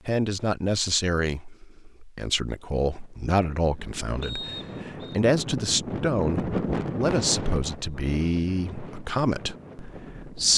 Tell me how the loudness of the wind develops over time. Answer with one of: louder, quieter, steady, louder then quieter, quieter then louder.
louder then quieter.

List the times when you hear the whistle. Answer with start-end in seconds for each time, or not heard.
4.2-5.2.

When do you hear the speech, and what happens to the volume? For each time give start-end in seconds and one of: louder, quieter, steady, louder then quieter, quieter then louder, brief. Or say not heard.
0.1-10.5 steady.